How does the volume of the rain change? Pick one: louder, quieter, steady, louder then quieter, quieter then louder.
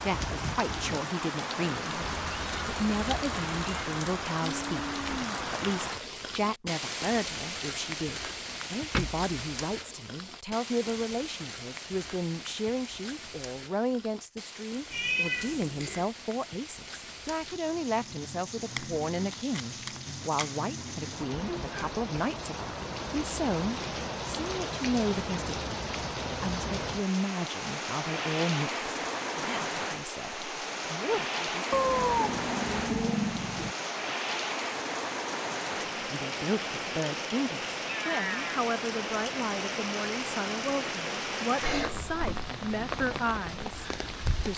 quieter then louder.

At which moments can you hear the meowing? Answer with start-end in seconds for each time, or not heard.
2.0-3.9, 14.9-16.1, 31.7-33.8.